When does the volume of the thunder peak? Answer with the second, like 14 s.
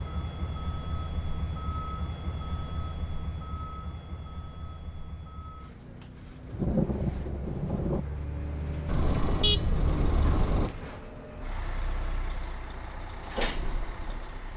7 s.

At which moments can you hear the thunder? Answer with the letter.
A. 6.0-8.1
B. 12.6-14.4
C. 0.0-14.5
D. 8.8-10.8
A.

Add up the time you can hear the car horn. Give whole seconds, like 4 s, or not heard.
2 s.